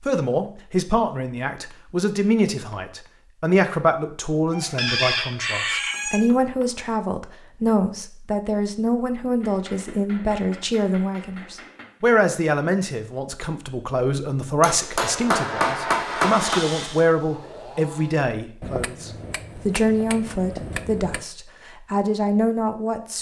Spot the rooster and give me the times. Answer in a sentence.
You can hear the rooster from 4.5 to 6.2 s.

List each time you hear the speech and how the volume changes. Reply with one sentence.
You can hear the speech from 0.1 to 23.1 s, at a steady volume.